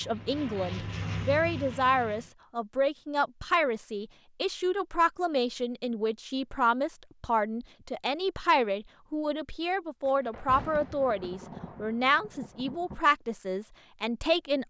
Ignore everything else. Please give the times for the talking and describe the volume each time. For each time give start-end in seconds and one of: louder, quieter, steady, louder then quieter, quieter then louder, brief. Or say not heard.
0.0-14.6 steady.